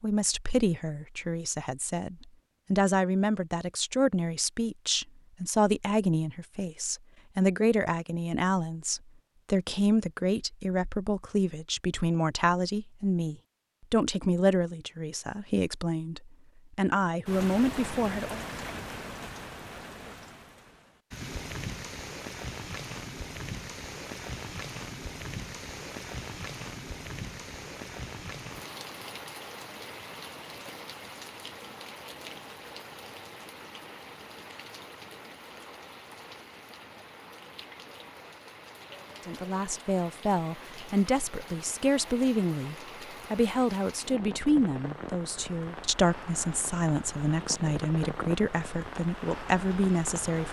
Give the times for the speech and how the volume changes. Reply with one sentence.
The speech can be heard from 0.0 to 18.4 s, at a steady volume; and from 39.2 to 50.4 s, at a steady volume.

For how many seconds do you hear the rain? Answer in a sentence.
The rain can be heard for 33 seconds in total.